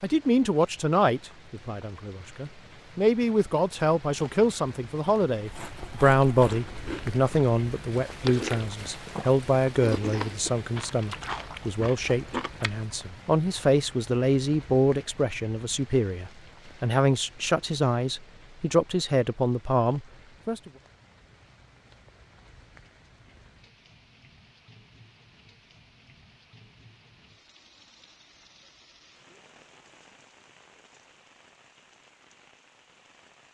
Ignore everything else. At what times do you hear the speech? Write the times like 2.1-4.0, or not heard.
0.0-20.7.